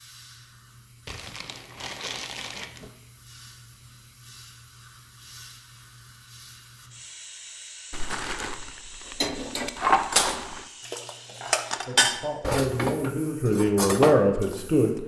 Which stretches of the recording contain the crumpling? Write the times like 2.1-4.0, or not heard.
1.1-2.9, 7.9-10.7.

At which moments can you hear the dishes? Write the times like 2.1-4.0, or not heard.
9.2-14.6.